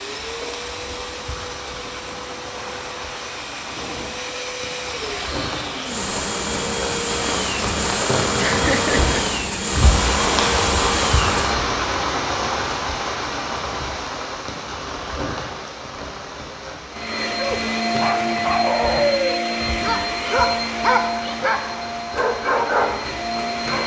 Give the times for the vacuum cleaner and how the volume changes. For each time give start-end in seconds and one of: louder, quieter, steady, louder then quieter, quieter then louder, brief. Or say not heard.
0.0-11.7 louder
16.9-23.8 quieter.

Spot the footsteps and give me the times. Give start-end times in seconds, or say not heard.
not heard.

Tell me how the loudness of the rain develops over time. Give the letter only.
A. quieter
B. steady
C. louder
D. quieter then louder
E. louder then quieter
E.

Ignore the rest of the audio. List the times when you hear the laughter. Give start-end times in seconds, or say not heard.
8.3-9.2.